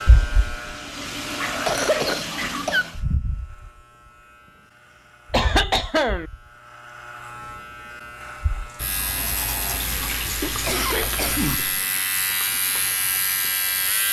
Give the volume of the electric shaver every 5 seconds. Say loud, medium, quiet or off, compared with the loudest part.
medium, medium, loud.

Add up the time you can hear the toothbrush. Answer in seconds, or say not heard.
3 s.